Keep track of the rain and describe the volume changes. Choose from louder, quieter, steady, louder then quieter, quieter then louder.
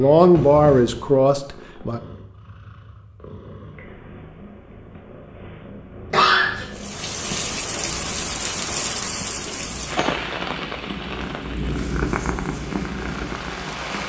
quieter.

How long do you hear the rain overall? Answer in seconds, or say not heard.
7 s.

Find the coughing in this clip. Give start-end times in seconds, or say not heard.
0.3-1.0, 6.1-6.7, 9.4-10.1.